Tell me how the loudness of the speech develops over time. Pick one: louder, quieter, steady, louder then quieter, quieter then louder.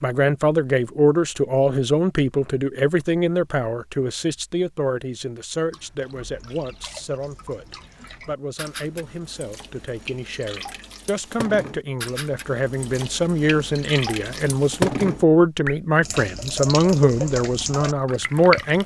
quieter then louder.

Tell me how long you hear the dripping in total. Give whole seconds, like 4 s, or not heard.
13 s.